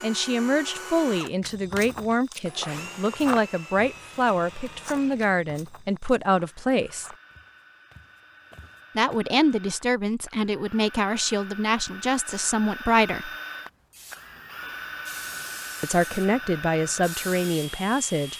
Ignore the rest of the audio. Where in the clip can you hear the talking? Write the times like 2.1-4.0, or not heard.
0.0-7.1, 8.9-13.3, 15.8-18.3.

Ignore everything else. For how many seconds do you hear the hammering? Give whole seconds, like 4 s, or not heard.
not heard.